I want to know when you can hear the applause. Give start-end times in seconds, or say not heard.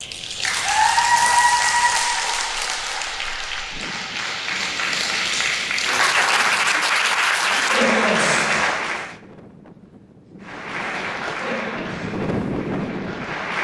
0.0-9.2, 10.4-13.5.